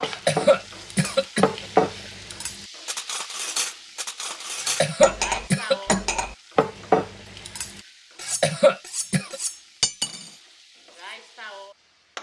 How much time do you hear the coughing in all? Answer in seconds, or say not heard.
5 s.